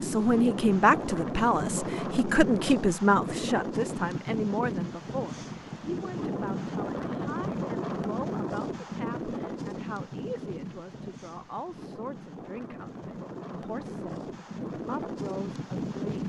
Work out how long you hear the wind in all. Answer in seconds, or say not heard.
16 s.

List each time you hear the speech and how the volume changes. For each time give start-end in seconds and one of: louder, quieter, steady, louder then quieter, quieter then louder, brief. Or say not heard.
0.0-16.2 quieter.